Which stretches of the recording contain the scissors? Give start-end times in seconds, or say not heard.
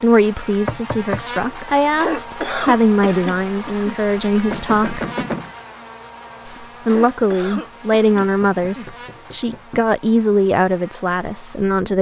not heard.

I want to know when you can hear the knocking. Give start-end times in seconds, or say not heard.
0.7-1.7, 4.5-5.5, 8.2-9.9.